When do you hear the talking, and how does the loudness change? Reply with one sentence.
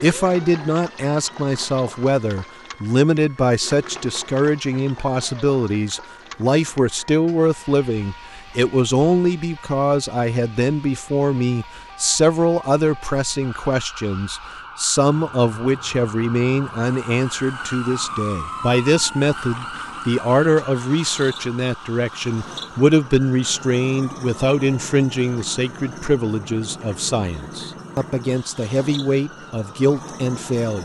You can hear the talking from 0.0 to 30.8 s, at a steady volume.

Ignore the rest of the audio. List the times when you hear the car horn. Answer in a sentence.
The car horn can't be heard in this clip.